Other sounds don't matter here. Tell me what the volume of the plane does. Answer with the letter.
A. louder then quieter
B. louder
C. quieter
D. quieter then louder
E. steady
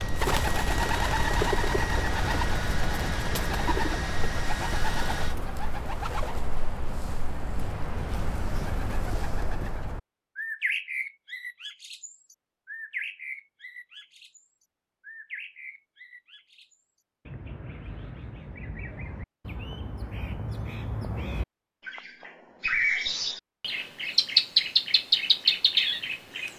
E.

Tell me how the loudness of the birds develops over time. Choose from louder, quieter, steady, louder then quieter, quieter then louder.
quieter then louder.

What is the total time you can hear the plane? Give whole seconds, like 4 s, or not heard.
5 s.